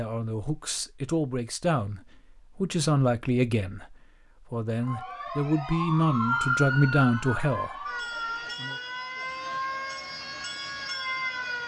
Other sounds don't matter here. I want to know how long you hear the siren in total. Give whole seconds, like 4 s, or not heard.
7 s.